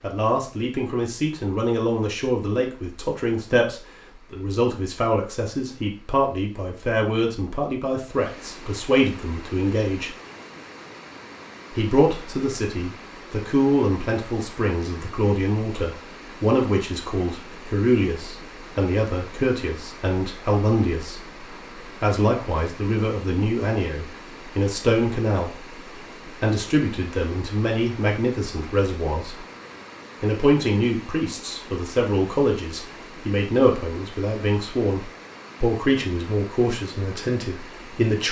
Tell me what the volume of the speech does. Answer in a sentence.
The volume of the speech stays about the same.